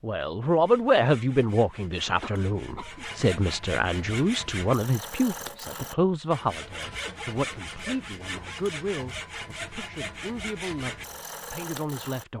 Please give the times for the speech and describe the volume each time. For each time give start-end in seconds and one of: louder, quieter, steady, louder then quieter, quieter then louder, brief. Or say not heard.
0.0-12.3 quieter.